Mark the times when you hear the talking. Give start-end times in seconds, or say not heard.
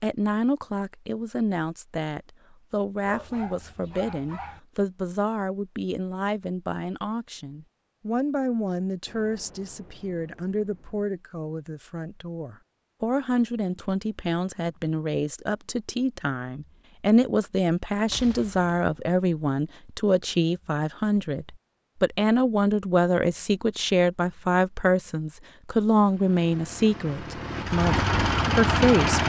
0.0-29.2.